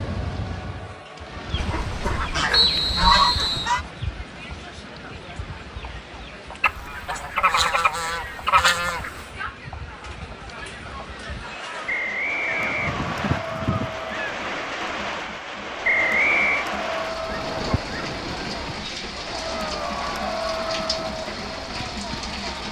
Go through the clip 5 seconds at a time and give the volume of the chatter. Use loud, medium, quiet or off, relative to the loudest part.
medium, medium, medium, loud, loud.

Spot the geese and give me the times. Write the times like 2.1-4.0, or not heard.
1.6-3.9, 6.6-9.2, 12.4-14.4, 17.2-18.9.